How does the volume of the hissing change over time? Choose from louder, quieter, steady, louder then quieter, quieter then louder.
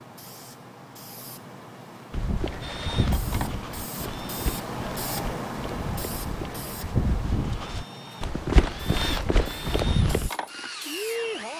louder then quieter.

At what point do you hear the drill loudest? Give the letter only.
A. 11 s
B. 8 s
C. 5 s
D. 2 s
A.